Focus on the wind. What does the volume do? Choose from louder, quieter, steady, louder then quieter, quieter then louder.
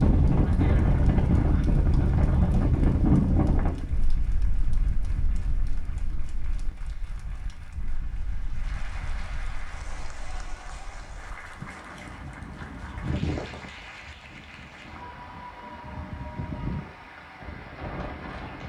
quieter then louder.